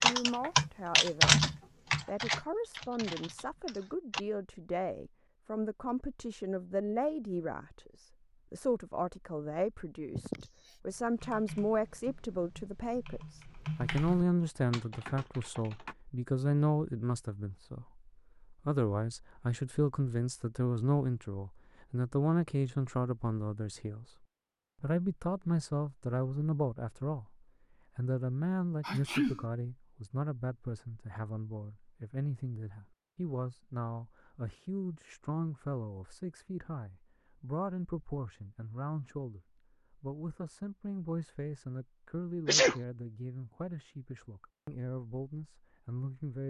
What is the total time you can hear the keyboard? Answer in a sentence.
You can hear the keyboard for 9 seconds altogether.